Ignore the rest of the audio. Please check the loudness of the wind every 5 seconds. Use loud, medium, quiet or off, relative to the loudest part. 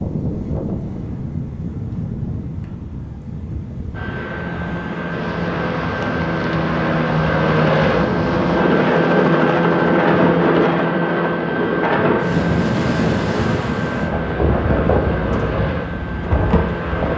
medium, medium, loud, loud.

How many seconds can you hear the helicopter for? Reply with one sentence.
The helicopter can be heard for 13 seconds in total.